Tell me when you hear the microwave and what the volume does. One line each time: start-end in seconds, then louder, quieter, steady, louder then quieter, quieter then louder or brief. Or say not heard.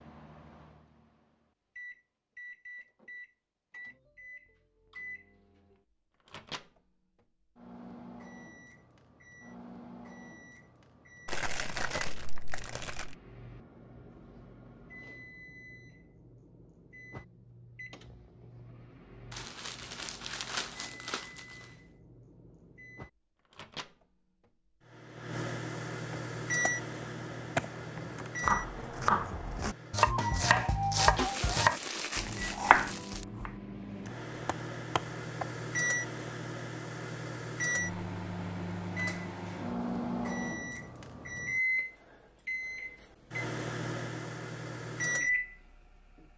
0.0-46.2 louder.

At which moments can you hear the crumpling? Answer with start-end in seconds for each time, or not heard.
11.2-13.2, 19.3-21.4, 31.2-33.2.